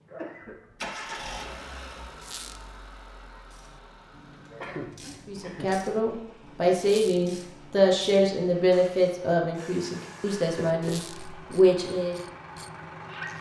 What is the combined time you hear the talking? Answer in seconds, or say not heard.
7 s.